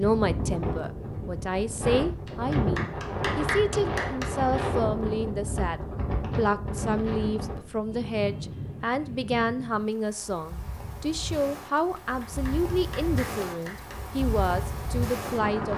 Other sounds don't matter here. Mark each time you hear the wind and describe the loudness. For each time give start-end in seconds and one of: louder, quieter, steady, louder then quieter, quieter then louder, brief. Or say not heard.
0.0-15.7 quieter then louder.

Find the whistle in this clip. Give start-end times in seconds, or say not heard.
not heard.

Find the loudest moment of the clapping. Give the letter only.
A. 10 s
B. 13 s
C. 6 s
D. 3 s
D.